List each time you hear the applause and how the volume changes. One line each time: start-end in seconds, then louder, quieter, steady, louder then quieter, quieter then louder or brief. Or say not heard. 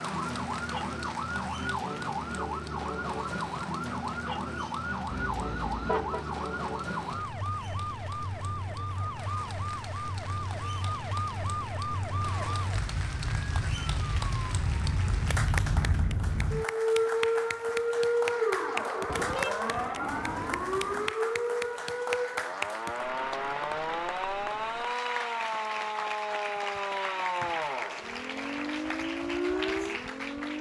0.0-30.5 louder.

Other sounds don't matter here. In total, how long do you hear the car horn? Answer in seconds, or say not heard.
3 s.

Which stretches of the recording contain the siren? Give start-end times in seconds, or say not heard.
0.0-30.5.